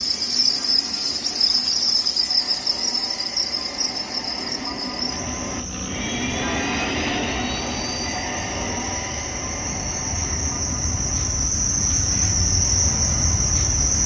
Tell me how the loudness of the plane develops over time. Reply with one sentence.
The loudness of the plane goes up, then down.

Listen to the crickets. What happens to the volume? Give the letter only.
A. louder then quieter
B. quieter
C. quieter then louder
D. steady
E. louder
C.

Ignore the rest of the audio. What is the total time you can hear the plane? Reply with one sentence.
The plane can be heard for 14 seconds in total.